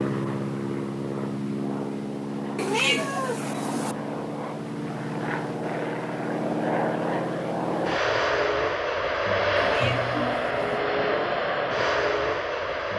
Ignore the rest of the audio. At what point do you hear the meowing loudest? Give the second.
3 s.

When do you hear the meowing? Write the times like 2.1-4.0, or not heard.
2.5-4.0, 9.6-10.8.